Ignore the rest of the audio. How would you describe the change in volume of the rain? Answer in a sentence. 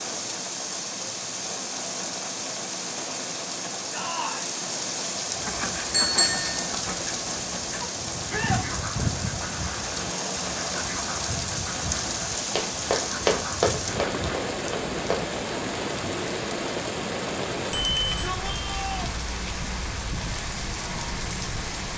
The loudness of the rain stays about the same.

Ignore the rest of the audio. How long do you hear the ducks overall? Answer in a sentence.
You can hear the ducks for 9 seconds altogether.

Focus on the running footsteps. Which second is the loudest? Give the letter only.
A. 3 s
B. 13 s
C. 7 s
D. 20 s
B.